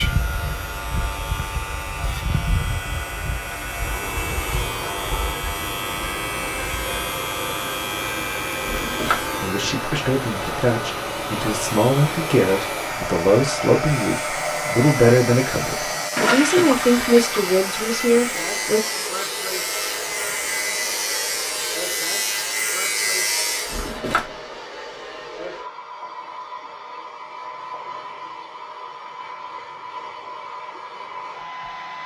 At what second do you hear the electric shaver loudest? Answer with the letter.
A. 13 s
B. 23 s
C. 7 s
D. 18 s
B.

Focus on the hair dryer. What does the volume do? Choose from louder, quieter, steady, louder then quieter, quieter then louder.
louder then quieter.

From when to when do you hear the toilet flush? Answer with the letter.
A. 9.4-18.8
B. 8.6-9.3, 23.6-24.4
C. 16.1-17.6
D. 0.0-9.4
C.